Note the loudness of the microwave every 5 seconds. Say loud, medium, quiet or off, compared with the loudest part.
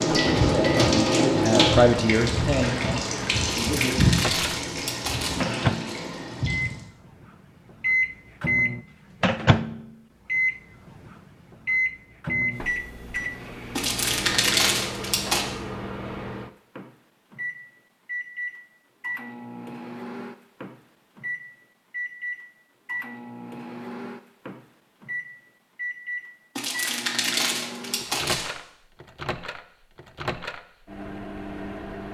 medium, loud, loud, medium, medium, medium, medium.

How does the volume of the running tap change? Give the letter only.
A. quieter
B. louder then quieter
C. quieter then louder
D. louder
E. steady
A.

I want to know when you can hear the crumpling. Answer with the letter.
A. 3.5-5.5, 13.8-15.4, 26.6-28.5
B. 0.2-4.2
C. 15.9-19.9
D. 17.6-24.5
A.